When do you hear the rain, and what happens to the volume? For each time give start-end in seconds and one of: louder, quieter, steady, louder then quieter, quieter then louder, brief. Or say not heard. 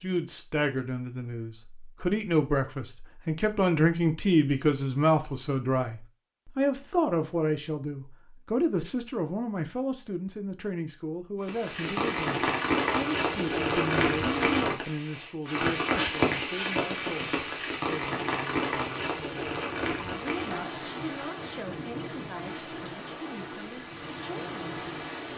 11.4-25.3 quieter.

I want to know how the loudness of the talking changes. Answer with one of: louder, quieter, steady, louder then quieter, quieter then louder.
quieter.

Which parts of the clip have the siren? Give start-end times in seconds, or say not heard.
not heard.